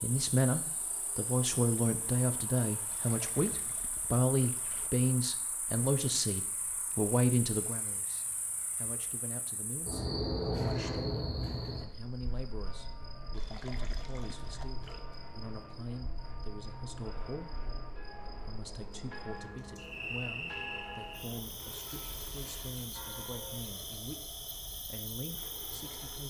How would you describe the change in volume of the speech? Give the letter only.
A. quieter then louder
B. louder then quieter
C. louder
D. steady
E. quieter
E.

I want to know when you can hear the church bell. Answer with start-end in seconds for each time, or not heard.
12.6-23.6.